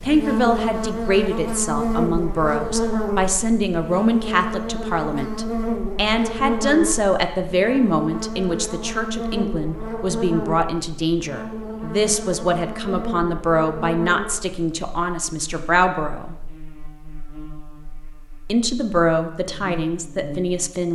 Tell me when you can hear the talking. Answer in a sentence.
The talking can be heard from 0.0 to 16.4 s and from 18.4 to 20.8 s.